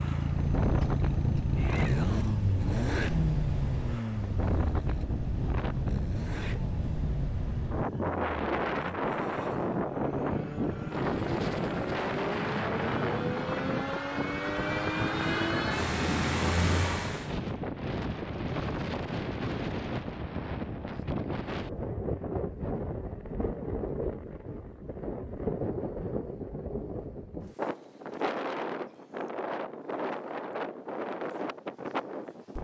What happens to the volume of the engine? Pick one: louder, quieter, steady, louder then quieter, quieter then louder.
quieter then louder.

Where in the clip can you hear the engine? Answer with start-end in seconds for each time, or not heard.
0.0-17.4.